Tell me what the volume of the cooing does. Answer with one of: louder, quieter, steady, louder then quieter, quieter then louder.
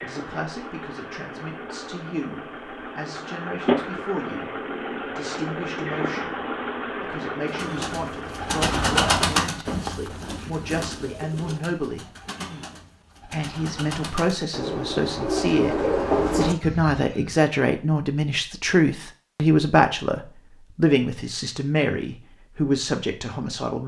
quieter then louder.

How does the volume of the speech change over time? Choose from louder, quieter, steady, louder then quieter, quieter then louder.
louder.